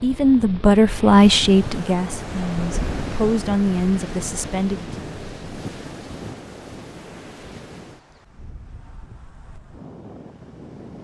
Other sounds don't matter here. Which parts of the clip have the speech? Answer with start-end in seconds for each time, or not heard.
0.0-4.9.